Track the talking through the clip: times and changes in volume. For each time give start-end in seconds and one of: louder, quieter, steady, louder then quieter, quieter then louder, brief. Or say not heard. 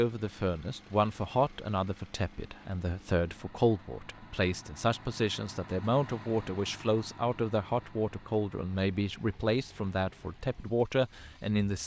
0.0-11.8 steady.